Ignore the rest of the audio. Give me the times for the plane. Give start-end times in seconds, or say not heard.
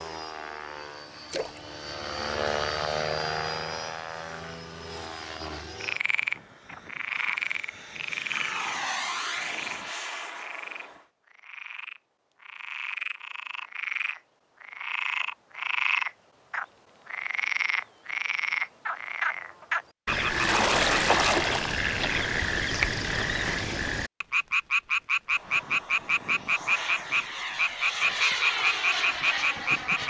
0.0-11.1, 25.3-30.0.